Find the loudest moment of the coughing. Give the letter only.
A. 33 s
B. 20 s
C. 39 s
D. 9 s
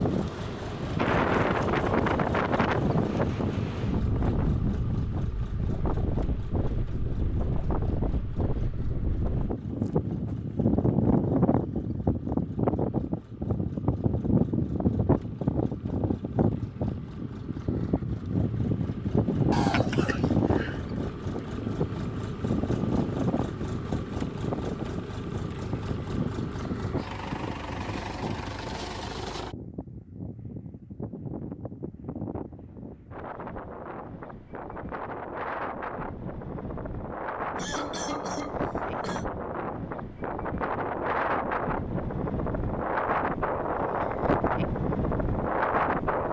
B.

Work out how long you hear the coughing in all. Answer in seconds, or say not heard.
3 s.